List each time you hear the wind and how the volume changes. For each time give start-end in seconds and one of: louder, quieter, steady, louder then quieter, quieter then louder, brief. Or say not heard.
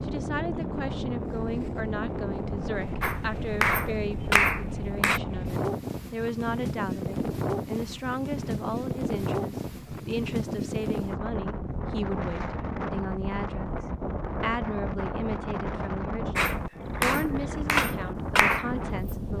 0.0-19.3 steady.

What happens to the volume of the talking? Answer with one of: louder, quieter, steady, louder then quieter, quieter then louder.
steady.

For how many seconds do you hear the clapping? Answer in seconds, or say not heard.
5 s.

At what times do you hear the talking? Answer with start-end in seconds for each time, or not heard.
0.0-13.8, 14.4-19.3.